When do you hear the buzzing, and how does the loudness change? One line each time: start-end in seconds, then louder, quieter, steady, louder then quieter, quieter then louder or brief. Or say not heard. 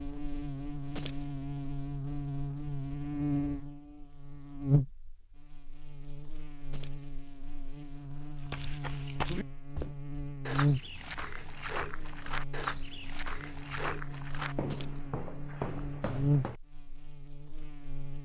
0.0-18.2 quieter then louder.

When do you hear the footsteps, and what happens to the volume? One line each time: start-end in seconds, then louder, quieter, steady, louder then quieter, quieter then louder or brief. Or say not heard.
8.3-16.6 steady.